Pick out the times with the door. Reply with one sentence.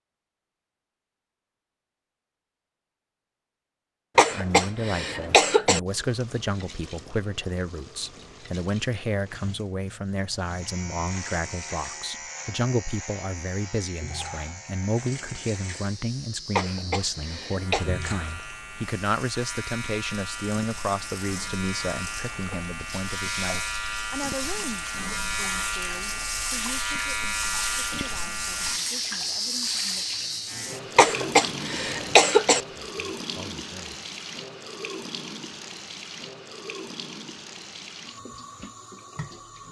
You can't hear the door here.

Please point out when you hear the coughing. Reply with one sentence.
The coughing can be heard from 4.2 to 5.8 s, from 16.6 to 17.9 s and from 30.9 to 32.6 s.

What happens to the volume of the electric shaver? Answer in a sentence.
The loudness of the electric shaver goes up.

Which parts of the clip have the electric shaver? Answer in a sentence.
You can hear the electric shaver from 10.4 to 30.9 s.